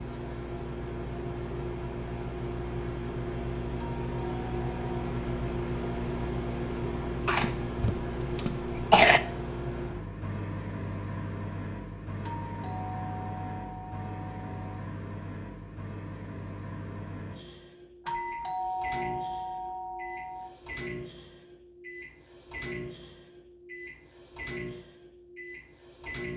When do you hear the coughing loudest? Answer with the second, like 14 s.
9 s.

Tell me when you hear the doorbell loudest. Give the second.
19 s.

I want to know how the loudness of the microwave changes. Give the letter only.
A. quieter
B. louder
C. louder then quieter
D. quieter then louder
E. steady
A.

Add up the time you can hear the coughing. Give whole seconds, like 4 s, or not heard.
2 s.